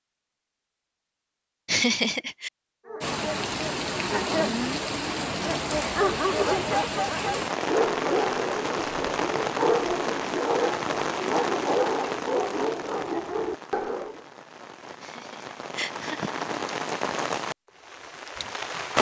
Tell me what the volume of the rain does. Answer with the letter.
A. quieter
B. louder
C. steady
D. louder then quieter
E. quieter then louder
E.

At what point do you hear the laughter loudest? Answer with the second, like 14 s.
2 s.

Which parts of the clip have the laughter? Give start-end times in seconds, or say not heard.
1.6-2.5, 15.0-16.4.